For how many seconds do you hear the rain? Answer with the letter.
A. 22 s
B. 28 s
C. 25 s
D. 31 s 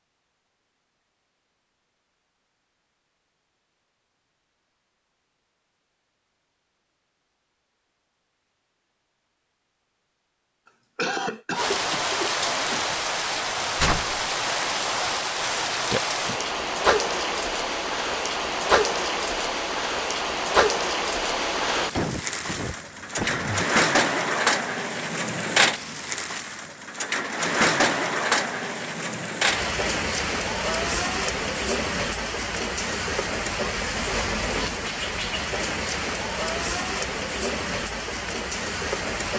B.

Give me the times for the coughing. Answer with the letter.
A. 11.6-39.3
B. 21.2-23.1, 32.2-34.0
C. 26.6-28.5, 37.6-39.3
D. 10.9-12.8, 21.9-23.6
D.